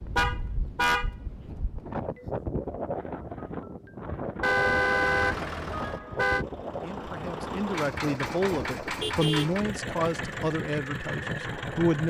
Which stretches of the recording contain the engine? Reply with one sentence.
The engine can be heard from 4.8 to 12.0 s.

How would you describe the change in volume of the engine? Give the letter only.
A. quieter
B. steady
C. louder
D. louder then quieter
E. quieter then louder
B.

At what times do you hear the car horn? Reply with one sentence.
You can hear the car horn from 0.1 to 1.6 s, from 4.4 to 6.5 s and from 8.8 to 9.5 s.